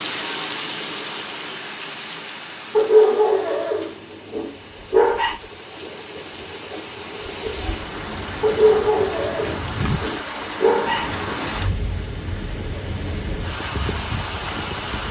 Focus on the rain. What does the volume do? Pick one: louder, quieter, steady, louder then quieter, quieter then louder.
quieter then louder.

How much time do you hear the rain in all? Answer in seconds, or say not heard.
15 s.